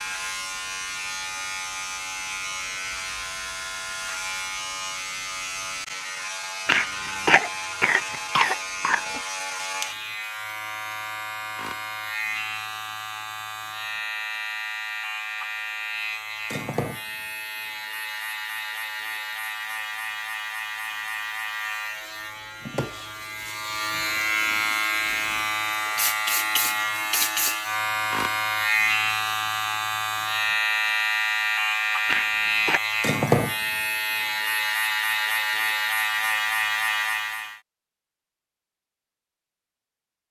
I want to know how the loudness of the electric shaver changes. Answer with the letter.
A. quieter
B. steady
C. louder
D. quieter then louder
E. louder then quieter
C.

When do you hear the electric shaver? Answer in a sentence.
The electric shaver can be heard from 0.0 to 37.6 s.